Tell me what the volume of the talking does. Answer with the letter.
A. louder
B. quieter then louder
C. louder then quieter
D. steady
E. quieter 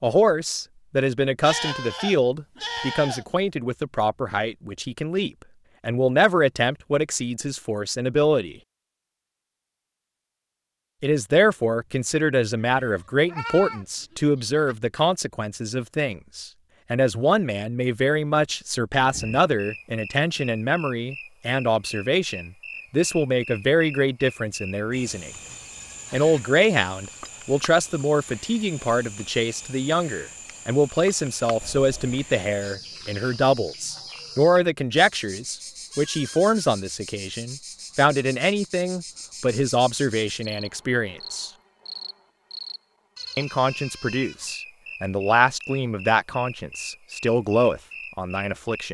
D.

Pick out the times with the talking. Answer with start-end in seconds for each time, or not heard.
0.0-8.6, 11.0-25.3, 26.1-41.5, 43.4-48.8.